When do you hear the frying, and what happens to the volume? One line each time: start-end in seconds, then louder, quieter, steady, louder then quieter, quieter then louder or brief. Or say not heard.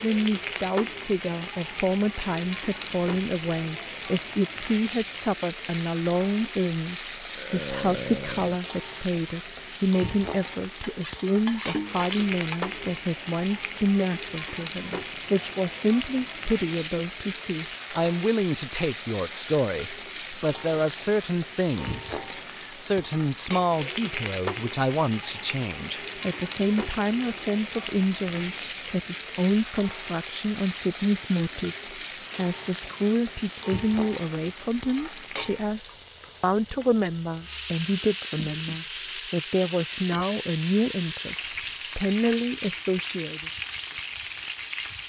0.0-45.0 steady.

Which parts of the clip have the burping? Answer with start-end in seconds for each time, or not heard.
7.3-8.6.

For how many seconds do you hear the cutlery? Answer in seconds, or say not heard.
2 s.